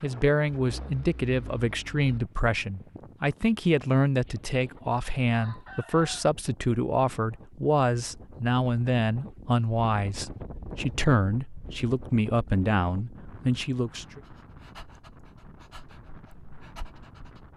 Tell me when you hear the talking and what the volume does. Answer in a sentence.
The talking can be heard from 0.0 to 14.2 s, at a steady volume.